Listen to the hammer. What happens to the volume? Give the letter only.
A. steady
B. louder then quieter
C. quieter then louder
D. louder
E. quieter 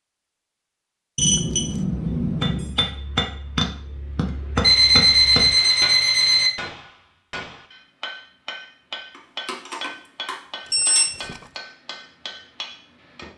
E.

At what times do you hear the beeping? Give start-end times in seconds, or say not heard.
1.1-2.7, 4.6-6.5, 9.4-11.1.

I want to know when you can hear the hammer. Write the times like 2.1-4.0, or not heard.
2.4-13.3.